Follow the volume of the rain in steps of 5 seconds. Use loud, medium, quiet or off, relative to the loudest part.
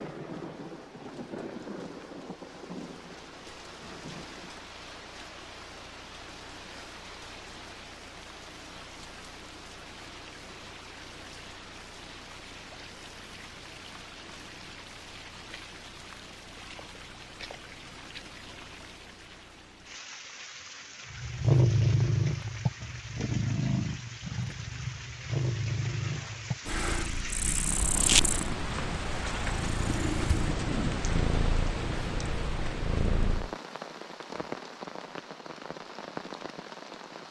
medium, medium, medium, medium, medium, loud, loud, medium.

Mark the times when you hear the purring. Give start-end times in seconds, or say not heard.
21.1-33.5.